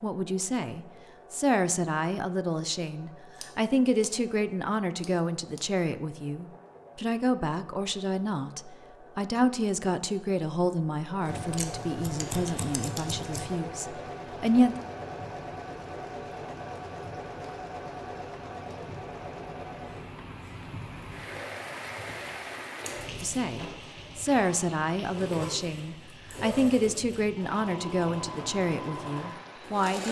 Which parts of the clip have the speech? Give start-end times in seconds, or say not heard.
0.0-14.8, 23.2-30.0.